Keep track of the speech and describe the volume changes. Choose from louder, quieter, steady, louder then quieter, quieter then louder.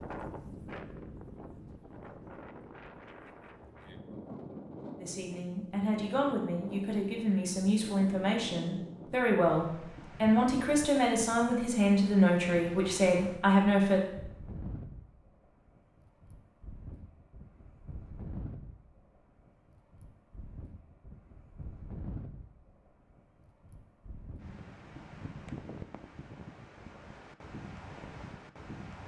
louder.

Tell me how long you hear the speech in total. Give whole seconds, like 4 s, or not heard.
9 s.